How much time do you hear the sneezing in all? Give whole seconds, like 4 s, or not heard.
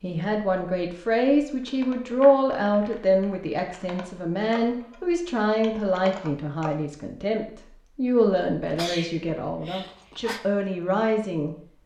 2 s.